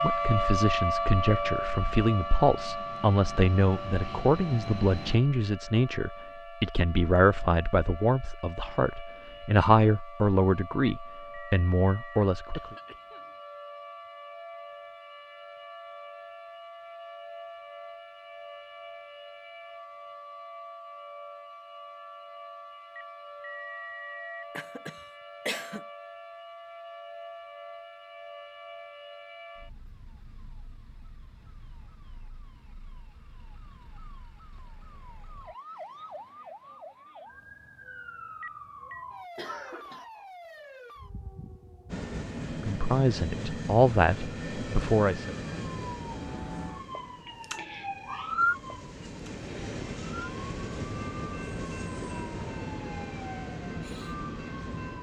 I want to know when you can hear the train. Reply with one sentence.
The train can be heard from 0.0 to 5.2 s and from 41.9 to 54.9 s.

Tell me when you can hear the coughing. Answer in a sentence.
You can hear the coughing from 12.5 to 13.3 s, from 24.6 to 25.8 s and from 39.4 to 40.0 s.